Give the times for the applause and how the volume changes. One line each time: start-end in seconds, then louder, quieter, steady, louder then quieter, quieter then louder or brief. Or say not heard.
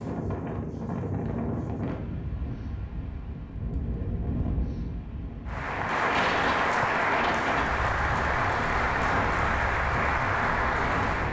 5.5-11.2 steady.